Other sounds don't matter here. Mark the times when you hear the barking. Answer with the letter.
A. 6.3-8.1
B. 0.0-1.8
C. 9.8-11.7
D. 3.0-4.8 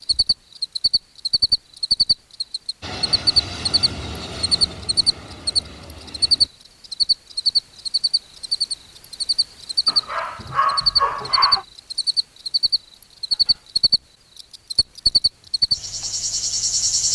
C.